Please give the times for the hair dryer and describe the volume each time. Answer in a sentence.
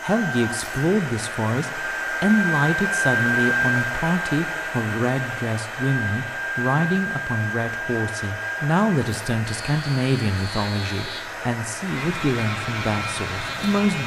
The hair dryer can be heard from 0.0 to 14.0 s, getting quieter.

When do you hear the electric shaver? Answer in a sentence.
The electric shaver can be heard from 9.4 to 14.0 s.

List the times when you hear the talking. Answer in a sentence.
You can hear the talking from 0.0 to 14.0 s.